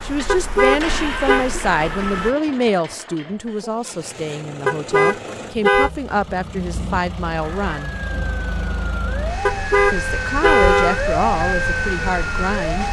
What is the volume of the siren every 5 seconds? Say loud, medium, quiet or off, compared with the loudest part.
medium, medium, loud.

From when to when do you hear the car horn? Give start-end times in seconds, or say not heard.
0.2-1.4, 4.7-5.9, 9.4-11.0.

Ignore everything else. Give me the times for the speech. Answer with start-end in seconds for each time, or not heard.
0.0-8.0, 9.9-12.8.